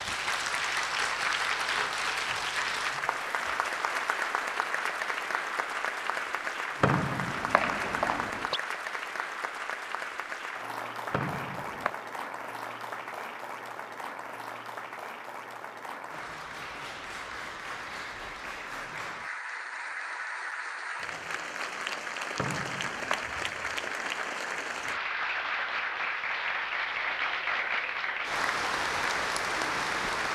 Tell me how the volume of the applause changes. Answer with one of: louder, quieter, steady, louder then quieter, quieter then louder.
quieter then louder.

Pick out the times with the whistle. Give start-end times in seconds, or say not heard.
6.8-8.6, 11.1-11.9, 22.4-23.3.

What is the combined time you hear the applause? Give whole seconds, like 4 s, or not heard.
30 s.